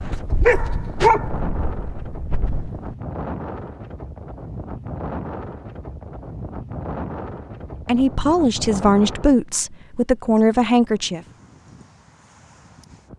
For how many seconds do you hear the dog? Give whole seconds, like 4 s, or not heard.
3 s.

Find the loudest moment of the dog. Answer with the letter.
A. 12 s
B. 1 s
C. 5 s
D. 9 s
B.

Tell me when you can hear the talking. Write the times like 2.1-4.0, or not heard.
7.8-11.2.